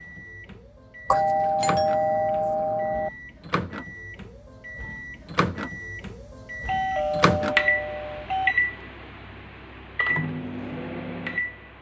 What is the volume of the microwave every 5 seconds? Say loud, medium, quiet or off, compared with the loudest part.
medium, loud, loud.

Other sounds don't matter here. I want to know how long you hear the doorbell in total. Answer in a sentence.
The doorbell can be heard for 4 seconds in total.